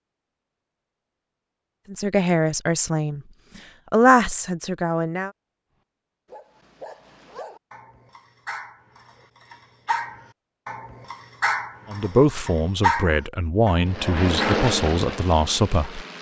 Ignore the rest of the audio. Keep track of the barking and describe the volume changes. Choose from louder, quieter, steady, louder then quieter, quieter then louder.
louder.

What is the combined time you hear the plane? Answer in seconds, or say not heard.
2 s.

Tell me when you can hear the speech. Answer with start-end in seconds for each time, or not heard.
1.9-3.2, 3.9-5.3, 11.9-16.0.